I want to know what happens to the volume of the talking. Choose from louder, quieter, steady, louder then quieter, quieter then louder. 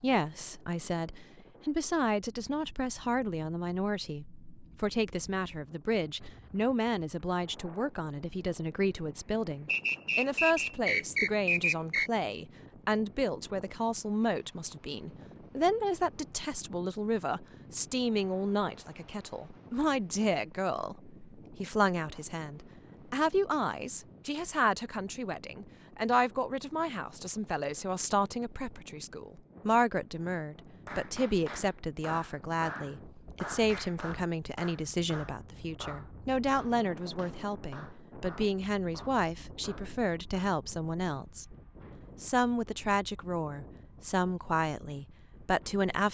steady.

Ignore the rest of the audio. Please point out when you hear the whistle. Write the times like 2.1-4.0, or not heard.
9.7-12.1.